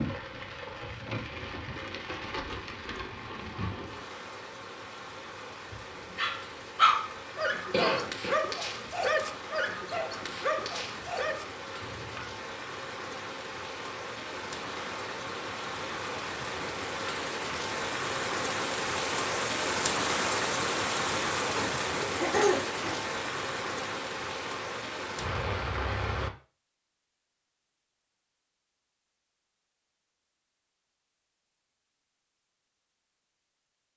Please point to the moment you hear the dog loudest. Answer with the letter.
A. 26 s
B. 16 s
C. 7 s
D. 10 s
C.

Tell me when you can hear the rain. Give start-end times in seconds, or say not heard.
0.0-26.3.